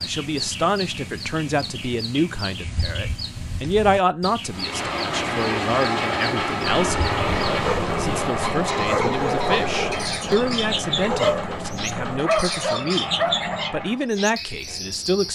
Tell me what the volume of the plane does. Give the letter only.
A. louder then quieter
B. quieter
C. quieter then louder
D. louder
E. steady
B.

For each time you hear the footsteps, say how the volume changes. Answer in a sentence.
The footsteps can't be heard in this clip.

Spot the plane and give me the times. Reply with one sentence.
The plane can be heard from 4.5 to 14.1 s.